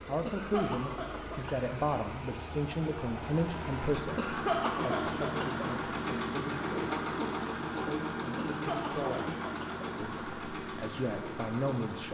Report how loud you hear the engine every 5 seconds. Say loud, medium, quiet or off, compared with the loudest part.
medium, loud, medium.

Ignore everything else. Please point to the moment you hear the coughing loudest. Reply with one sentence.
The volume of the coughing peaks at 5 seconds.